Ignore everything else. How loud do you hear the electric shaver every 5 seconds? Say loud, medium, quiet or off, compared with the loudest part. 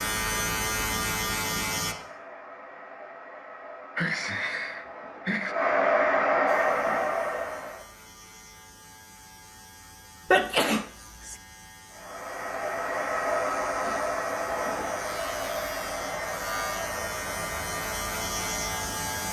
loud, quiet, quiet, medium.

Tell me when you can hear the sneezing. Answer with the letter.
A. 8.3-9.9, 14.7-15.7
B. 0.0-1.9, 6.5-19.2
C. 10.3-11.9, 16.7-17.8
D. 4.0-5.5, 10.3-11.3
D.